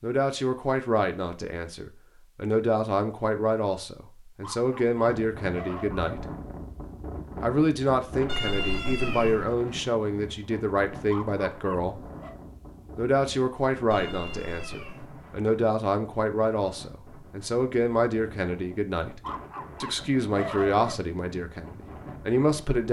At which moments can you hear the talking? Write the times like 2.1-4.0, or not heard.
0.0-6.2, 7.4-12.0, 12.9-19.2, 19.8-22.8.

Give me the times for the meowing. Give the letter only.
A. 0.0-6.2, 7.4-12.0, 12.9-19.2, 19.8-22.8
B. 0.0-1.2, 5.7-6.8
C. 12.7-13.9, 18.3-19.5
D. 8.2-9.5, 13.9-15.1
D.